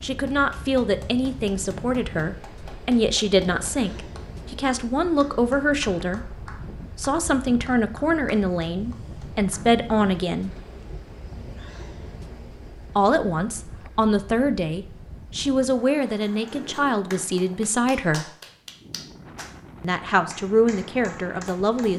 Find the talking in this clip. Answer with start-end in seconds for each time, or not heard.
0.0-6.2, 7.0-10.5, 12.9-18.3, 19.8-21.9.